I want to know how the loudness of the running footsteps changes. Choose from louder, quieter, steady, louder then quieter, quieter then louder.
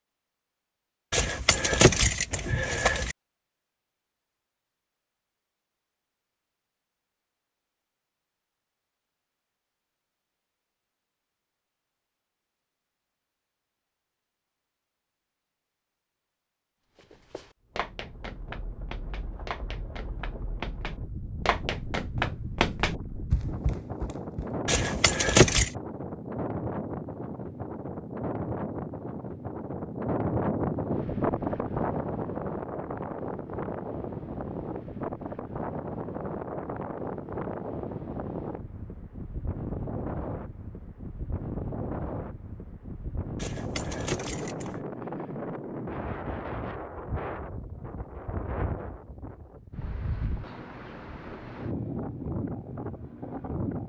louder.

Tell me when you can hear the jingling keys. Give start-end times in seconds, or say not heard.
1.1-3.1, 24.6-25.7, 43.4-44.9.